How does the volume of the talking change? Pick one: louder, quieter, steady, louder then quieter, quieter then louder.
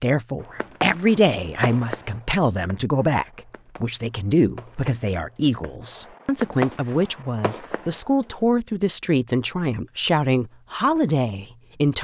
steady.